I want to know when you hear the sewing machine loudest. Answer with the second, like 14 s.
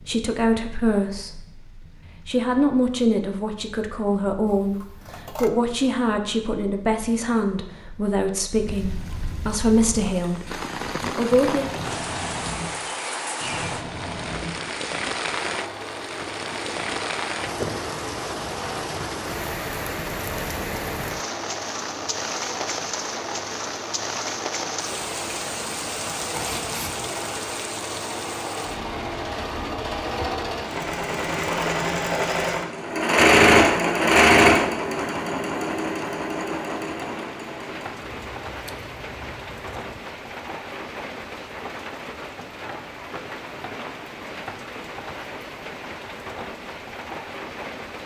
34 s.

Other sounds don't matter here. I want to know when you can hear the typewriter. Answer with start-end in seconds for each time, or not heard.
not heard.